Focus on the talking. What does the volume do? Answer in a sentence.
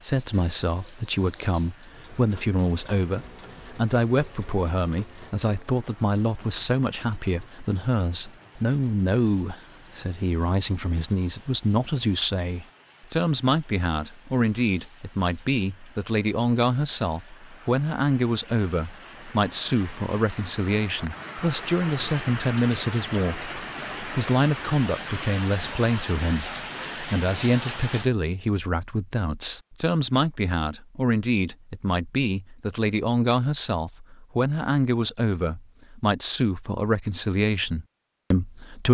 The volume of the talking stays about the same.